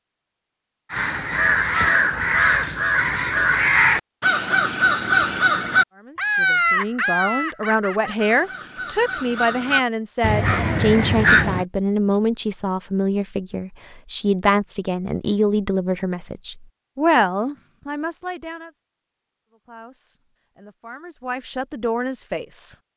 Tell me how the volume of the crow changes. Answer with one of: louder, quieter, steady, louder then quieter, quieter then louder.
quieter then louder.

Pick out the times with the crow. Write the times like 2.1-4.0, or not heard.
0.9-11.7.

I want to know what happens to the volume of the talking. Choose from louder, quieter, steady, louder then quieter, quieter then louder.
quieter.